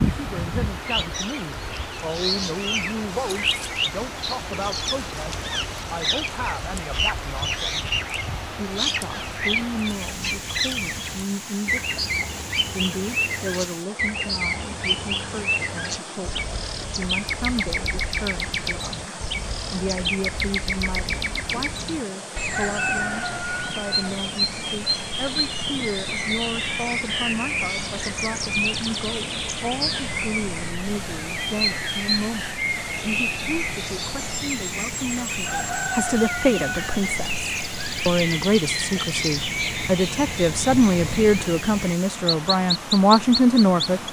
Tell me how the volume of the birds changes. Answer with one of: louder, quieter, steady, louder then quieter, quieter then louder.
steady.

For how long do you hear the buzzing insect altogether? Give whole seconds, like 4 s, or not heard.
not heard.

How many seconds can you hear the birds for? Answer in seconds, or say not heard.
44 s.